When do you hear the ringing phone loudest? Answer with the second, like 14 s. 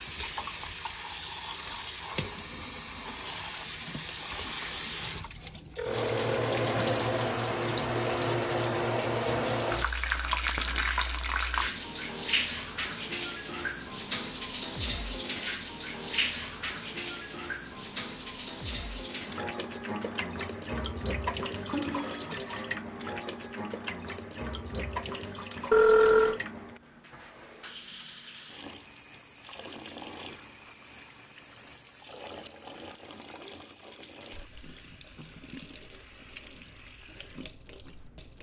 26 s.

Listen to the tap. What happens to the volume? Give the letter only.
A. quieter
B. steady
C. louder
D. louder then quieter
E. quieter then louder
A.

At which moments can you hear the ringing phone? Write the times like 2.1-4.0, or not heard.
5.8-6.3, 21.7-22.4, 25.7-26.4.